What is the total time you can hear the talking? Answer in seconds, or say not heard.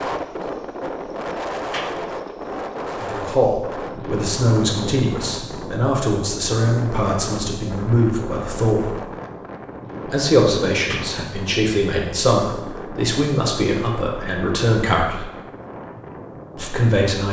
12 s.